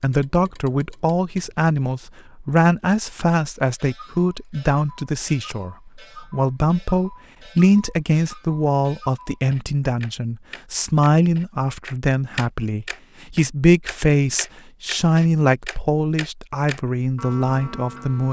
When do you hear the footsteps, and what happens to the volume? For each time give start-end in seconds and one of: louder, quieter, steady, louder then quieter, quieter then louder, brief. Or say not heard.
not heard.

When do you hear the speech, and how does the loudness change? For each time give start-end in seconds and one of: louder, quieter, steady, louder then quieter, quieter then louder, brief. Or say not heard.
0.0-18.2 steady.